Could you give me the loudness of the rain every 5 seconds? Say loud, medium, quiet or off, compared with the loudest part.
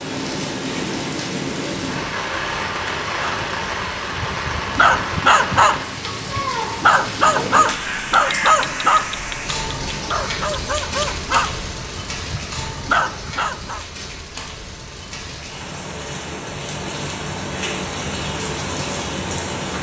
loud, loud, medium, loud.